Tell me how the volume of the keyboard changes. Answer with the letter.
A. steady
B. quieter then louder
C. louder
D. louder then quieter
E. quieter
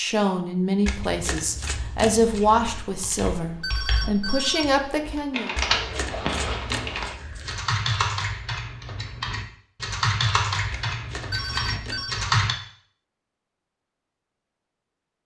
C.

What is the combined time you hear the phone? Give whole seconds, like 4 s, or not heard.
2 s.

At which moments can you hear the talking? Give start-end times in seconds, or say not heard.
0.0-5.5.